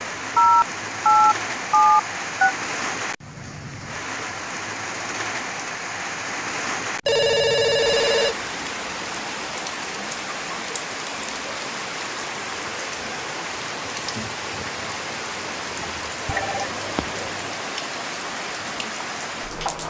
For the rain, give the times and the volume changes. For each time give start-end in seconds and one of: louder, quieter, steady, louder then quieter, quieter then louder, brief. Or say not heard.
0.0-19.8 steady.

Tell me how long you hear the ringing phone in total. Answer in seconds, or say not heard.
5 s.